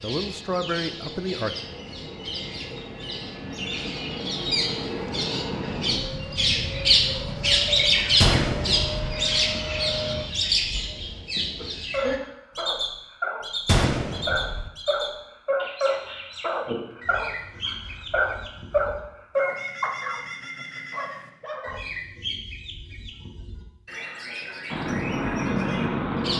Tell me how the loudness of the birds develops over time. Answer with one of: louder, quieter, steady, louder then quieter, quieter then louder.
louder then quieter.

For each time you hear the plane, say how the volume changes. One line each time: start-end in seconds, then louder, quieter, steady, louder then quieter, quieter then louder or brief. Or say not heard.
0.0-10.2 louder
24.6-26.3 brief.